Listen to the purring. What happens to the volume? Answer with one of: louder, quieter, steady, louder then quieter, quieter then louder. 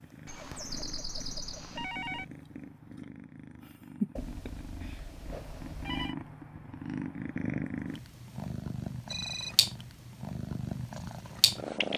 louder.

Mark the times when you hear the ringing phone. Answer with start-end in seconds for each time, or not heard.
0.2-2.2, 4.2-6.2, 9.1-9.6.